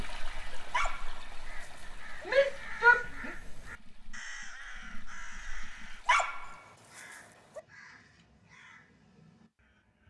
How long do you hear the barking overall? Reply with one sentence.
The barking can be heard for 3 seconds in total.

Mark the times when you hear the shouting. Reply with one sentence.
You can hear the shouting from 2.2 to 3.3 s.